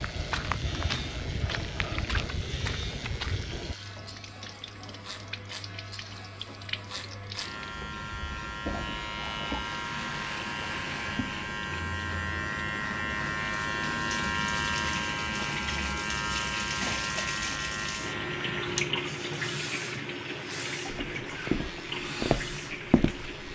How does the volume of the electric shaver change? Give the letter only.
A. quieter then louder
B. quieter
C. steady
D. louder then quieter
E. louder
D.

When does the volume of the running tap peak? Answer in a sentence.
The volume of the running tap peaks at 19 seconds.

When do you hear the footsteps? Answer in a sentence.
The footsteps can be heard from 0.0 to 3.8 s and from 20.9 to 23.3 s.